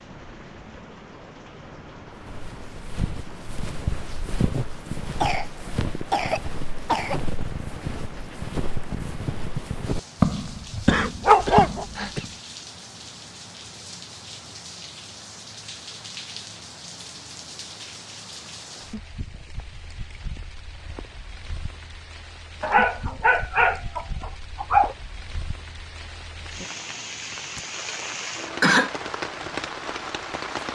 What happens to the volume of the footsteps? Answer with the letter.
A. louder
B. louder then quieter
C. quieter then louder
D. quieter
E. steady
A.